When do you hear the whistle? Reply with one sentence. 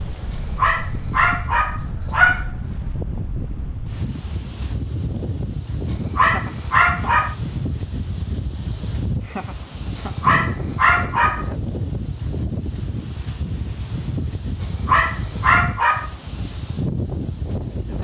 The whistle can't be heard in this clip.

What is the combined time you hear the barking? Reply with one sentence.
The barking can be heard for 7 seconds in total.